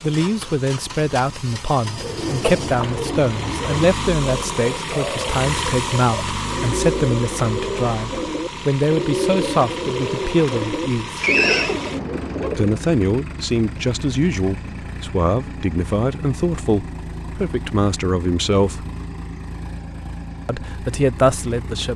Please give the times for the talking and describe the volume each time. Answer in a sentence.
The talking can be heard from 0.0 to 11.2 s, at a steady volume; from 12.6 to 18.9 s, at a steady volume; and briefly from 20.4 to 21.9 s.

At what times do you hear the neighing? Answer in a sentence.
You can hear the neighing from 11.2 to 11.8 s.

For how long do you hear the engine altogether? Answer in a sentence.
The engine can be heard for 22 seconds in total.